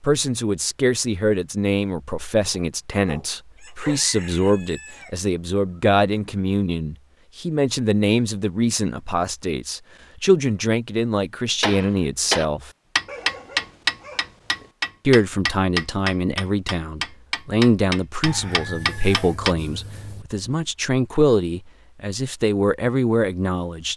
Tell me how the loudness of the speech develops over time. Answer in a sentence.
The loudness of the speech stays about the same.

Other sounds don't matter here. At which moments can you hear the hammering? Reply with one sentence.
The hammering can be heard from 11.6 to 19.6 s.